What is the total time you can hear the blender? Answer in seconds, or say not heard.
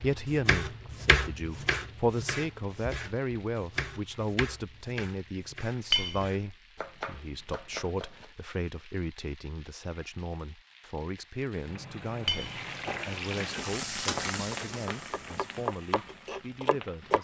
not heard.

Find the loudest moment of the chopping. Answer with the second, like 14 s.
1 s.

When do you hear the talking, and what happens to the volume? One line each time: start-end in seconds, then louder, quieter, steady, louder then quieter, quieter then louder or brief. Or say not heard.
0.0-17.1 quieter.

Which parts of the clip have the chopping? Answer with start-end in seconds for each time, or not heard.
0.0-8.3, 14.3-17.1.